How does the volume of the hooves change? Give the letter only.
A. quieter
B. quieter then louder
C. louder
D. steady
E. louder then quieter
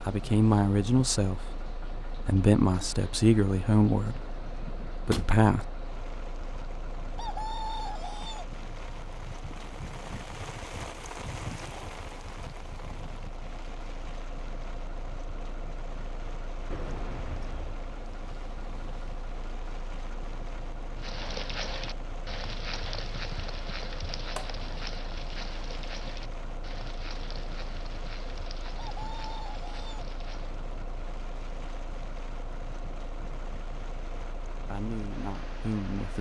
A.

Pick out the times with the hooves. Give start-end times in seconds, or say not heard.
20.9-30.6.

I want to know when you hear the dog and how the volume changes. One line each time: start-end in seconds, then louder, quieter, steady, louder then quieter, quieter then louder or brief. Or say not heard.
not heard.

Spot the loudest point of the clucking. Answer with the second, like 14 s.
8 s.